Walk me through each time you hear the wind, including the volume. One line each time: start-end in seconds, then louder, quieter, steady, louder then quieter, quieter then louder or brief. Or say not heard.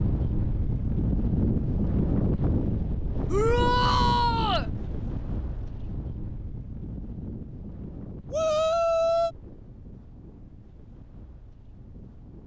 0.0-12.4 quieter.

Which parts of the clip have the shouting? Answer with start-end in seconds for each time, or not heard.
3.2-4.7, 8.3-9.3.